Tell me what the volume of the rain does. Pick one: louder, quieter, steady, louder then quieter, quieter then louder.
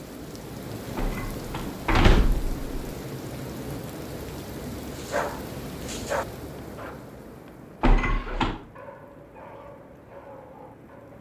quieter.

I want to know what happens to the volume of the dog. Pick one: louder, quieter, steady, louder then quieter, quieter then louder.
quieter.